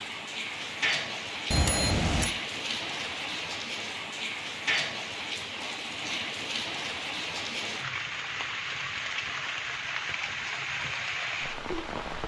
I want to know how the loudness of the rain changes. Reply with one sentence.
The volume of the rain stays about the same.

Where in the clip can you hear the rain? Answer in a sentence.
The rain can be heard from 0.0 to 12.2 s.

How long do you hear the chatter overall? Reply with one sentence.
The chatter can't be heard in this clip.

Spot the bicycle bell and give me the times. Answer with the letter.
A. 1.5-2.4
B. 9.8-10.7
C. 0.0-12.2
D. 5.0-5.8
A.